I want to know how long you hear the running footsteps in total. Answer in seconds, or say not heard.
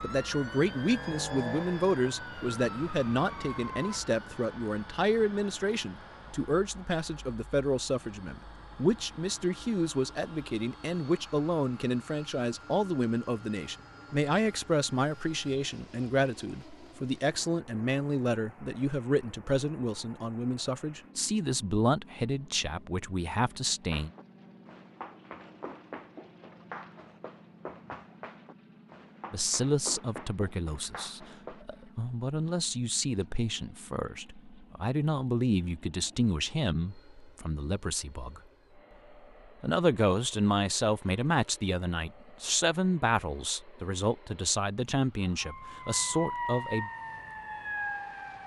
8 s.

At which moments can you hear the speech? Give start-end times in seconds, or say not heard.
0.0-24.1, 29.3-38.4, 39.6-46.9.